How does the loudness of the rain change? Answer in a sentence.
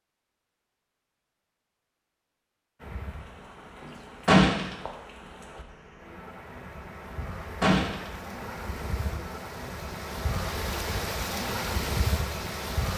The loudness of the rain goes up.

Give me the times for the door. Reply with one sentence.
You can hear the door from 4.2 to 4.8 s and from 7.2 to 8.1 s.